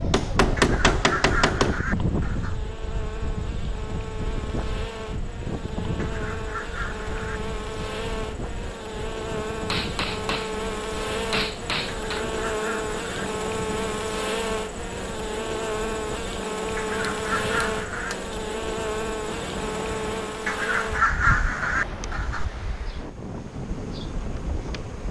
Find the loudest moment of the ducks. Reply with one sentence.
The volume of the ducks peaks at 21 seconds.